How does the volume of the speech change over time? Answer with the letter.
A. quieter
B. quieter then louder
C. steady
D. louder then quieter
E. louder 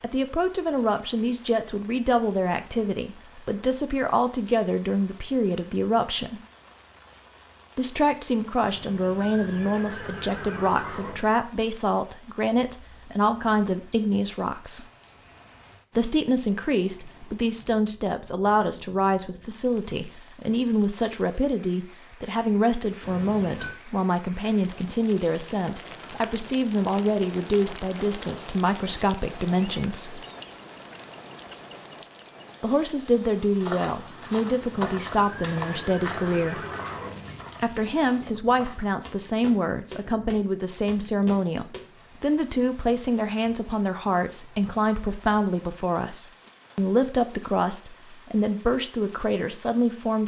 C.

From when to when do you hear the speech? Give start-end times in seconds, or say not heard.
0.0-6.4, 7.8-14.8, 15.9-30.2, 32.6-36.6, 37.6-50.2.